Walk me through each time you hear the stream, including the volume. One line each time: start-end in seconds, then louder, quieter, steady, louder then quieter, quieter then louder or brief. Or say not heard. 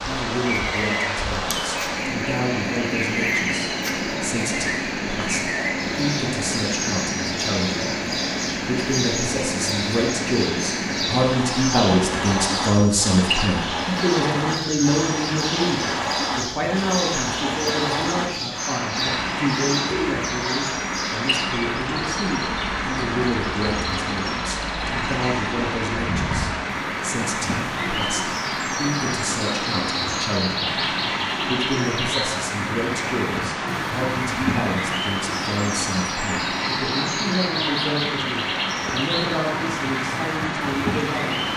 0.0-41.5 steady.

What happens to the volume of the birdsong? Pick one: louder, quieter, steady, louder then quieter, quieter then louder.
steady.